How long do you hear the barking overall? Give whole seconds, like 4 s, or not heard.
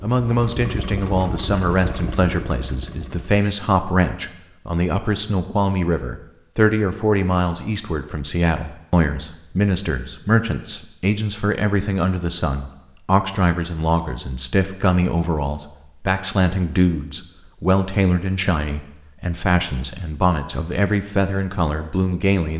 not heard.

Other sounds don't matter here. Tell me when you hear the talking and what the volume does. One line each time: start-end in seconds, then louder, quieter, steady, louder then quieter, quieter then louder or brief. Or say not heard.
0.0-22.5 steady.